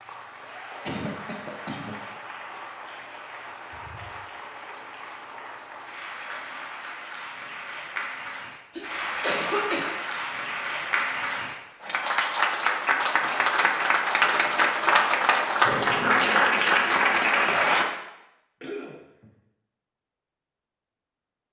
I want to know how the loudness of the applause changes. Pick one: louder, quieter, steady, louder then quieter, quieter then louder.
louder.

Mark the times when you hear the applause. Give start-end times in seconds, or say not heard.
0.0-17.9.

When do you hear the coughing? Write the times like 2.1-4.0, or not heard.
0.8-1.9, 8.8-9.9, 18.6-19.3.